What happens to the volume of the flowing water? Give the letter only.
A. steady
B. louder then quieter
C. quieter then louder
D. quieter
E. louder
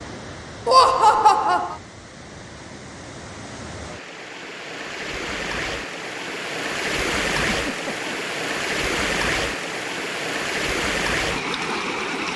E.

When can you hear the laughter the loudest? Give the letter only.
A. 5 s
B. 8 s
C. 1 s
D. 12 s
C.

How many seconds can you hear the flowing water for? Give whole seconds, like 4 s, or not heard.
12 s.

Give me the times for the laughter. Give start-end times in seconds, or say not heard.
0.7-1.8, 7.3-8.1.